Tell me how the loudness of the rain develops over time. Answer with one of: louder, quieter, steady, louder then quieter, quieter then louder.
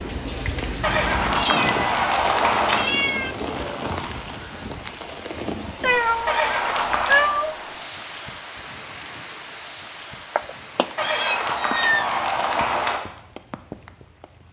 quieter.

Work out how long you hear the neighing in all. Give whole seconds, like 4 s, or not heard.
5 s.